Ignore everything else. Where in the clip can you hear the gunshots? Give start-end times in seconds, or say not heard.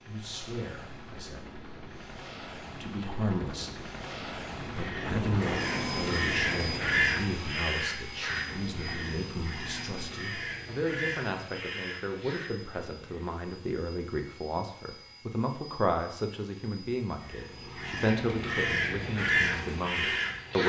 5.0-7.0.